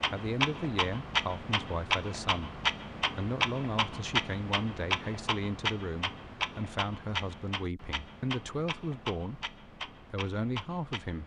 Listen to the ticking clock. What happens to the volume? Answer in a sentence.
The loudness of the ticking clock goes down.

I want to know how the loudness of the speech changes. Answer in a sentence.
The volume of the speech stays about the same.